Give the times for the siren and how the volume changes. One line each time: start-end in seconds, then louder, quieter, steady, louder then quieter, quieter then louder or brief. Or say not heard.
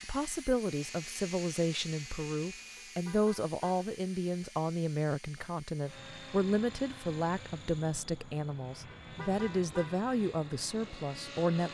not heard.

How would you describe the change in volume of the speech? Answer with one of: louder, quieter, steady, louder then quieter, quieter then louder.
steady.